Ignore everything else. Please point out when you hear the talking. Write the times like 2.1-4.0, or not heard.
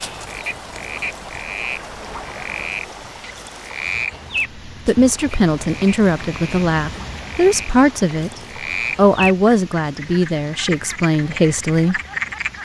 4.7-8.3, 8.9-12.0.